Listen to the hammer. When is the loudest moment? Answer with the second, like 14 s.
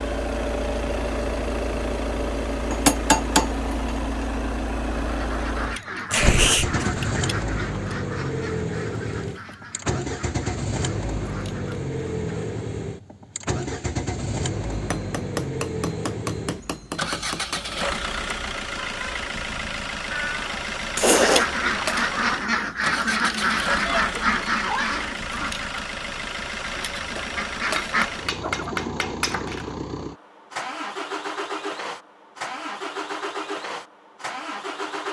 3 s.